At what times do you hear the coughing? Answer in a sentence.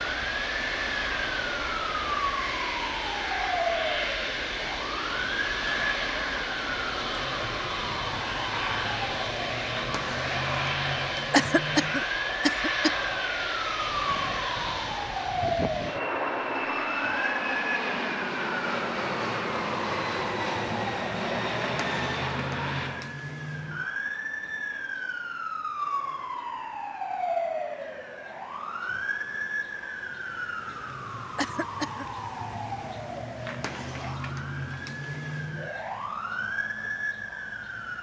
You can hear the coughing from 11.3 to 12.9 s and from 31.4 to 32.1 s.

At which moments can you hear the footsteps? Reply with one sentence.
You can't hear the footsteps here.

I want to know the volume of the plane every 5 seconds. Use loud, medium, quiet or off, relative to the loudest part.
loud, loud, loud, loud, loud, quiet, quiet, quiet.